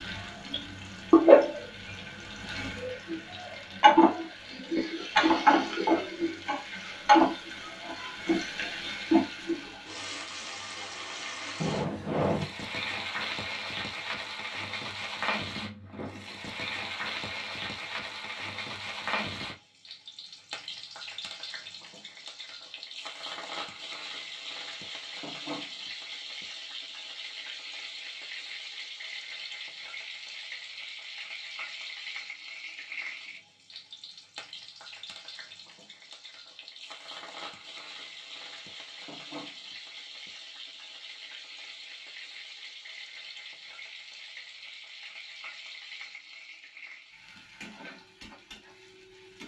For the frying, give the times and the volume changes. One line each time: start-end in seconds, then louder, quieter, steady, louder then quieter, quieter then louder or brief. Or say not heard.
0.0-49.4 quieter.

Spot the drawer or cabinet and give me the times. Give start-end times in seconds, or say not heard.
11.6-12.5.